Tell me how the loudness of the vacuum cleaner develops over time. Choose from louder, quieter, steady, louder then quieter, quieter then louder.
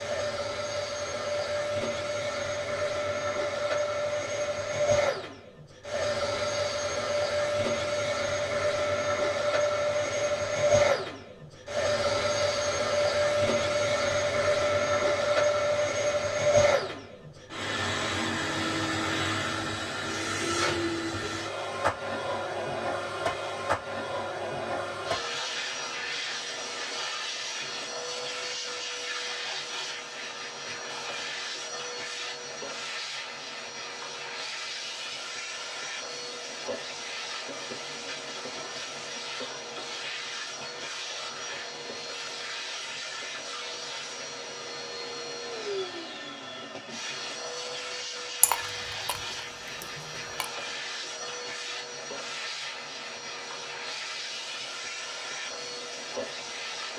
quieter.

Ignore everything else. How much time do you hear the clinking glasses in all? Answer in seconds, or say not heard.
2 s.